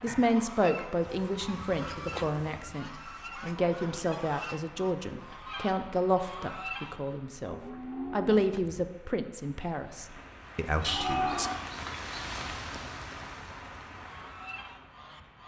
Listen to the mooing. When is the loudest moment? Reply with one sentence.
The volume of the mooing peaks at 11 seconds.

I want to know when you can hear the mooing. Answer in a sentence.
You can hear the mooing from 1.1 to 2.7 s, from 7.4 to 8.7 s and from 10.8 to 12.2 s.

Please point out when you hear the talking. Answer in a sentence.
The talking can be heard from 0.0 to 11.5 s.